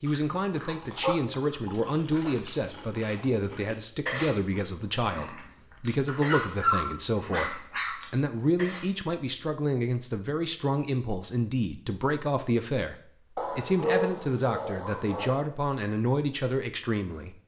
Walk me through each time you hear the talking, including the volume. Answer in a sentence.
The talking can be heard from 0.0 to 17.4 s, at a steady volume.